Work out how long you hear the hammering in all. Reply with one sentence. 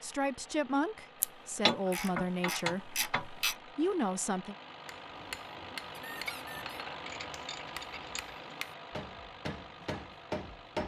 The hammering can be heard for 6 seconds in total.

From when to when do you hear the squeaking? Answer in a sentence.
You can hear the squeaking from 5.9 to 6.8 s.